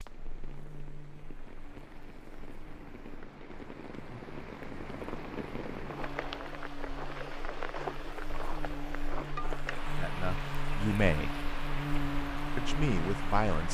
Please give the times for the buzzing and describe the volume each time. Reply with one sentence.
You can hear the buzzing from 0.0 to 13.6 s, getting louder.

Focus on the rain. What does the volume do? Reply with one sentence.
The loudness of the rain goes up.